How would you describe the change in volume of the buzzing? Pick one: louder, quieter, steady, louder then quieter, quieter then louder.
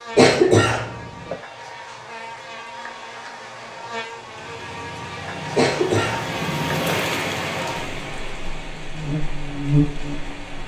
louder.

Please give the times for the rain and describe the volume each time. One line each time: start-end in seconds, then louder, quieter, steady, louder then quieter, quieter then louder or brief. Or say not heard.
4.2-10.6 louder then quieter.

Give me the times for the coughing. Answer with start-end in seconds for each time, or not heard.
0.1-1.4, 5.5-7.0.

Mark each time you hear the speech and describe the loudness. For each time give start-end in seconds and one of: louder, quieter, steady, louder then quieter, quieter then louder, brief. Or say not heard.
not heard.